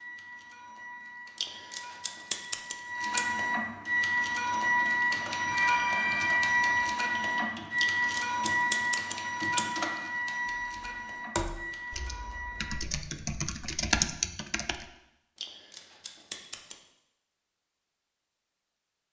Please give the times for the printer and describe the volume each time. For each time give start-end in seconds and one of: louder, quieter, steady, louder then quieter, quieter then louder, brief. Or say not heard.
0.0-12.8 louder then quieter.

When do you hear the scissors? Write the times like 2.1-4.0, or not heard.
1.4-3.4, 7.8-9.8, 15.3-16.8.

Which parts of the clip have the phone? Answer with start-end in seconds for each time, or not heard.
5.4-7.0.